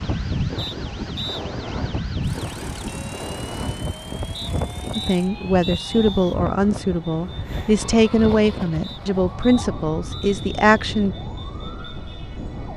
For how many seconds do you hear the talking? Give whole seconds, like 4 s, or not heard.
6 s.